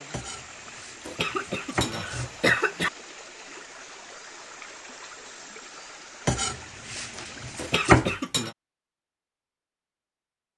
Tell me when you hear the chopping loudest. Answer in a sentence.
The volume of the chopping peaks at 8 seconds.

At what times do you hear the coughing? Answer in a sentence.
The coughing can be heard from 1.1 to 2.9 s and from 7.5 to 8.6 s.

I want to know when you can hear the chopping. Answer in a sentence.
You can hear the chopping from 0.1 to 2.5 s and from 6.2 to 8.2 s.